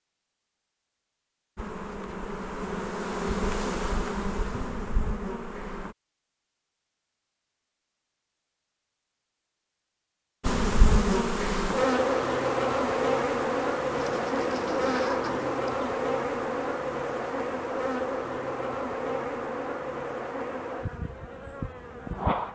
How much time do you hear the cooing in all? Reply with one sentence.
The cooing can be heard for 2 seconds in total.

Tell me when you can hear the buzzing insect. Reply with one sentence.
You can hear the buzzing insect from 1.6 to 6.0 s and from 10.4 to 22.5 s.